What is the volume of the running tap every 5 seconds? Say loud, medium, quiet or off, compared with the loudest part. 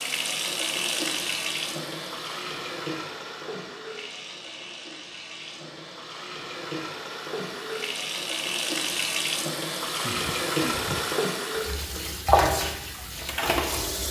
medium, medium, loud.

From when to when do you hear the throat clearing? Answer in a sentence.
The throat clearing can be heard from 10.0 to 11.1 s.